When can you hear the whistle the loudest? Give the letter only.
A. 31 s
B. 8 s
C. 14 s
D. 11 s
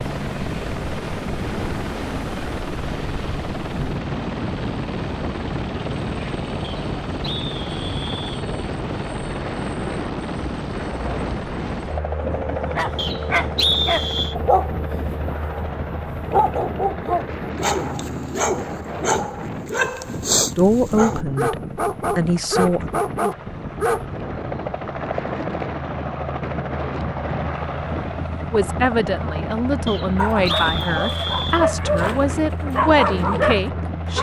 C.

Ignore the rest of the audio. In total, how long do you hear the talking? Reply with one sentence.
You can hear the talking for 8 seconds altogether.